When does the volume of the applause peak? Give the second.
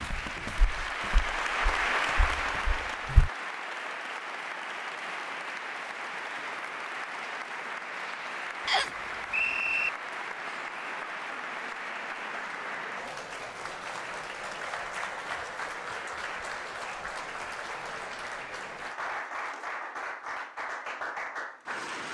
2 s.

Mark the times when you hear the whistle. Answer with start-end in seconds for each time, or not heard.
8.7-9.9.